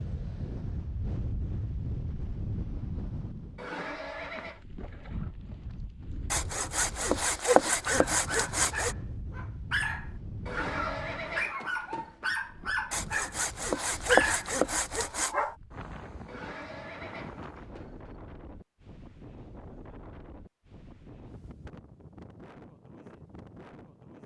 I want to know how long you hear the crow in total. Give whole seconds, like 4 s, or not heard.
not heard.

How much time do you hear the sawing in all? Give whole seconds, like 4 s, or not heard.
5 s.